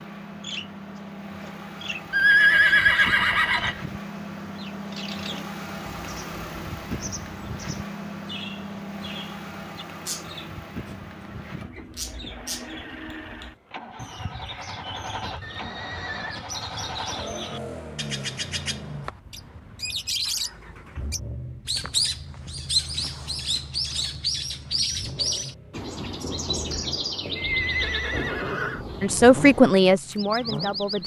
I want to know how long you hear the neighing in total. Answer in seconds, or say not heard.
4 s.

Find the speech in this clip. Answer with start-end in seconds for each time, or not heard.
29.0-31.0.